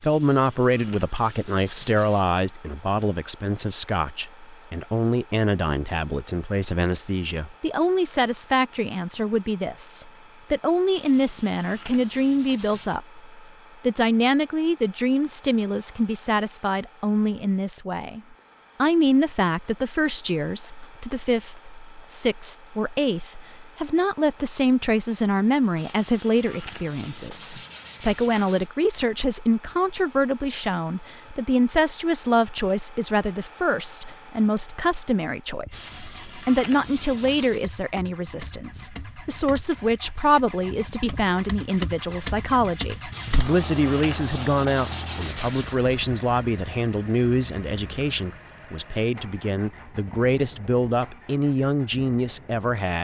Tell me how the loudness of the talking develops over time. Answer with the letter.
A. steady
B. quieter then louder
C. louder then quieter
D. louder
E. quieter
A.